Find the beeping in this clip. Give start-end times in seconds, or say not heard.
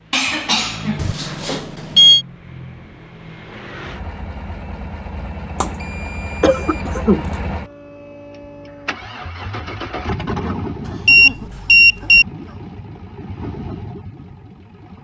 0.9-2.2, 5.6-6.8, 11.1-12.2.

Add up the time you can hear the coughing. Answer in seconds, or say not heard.
4 s.